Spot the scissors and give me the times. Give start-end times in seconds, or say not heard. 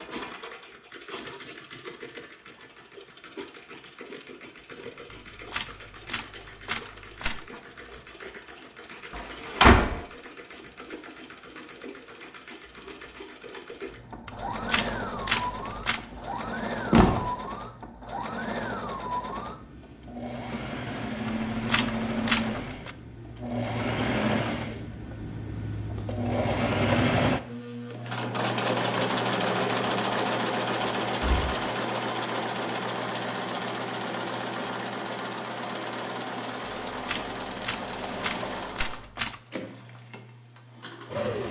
not heard.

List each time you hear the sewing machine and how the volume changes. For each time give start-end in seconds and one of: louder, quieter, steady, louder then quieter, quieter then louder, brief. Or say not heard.
0.0-41.4 louder then quieter.